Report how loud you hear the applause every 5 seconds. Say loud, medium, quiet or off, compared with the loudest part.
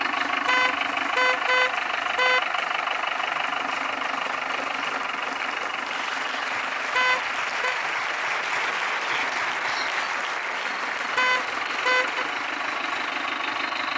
medium, loud, loud.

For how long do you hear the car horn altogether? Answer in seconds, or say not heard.
4 s.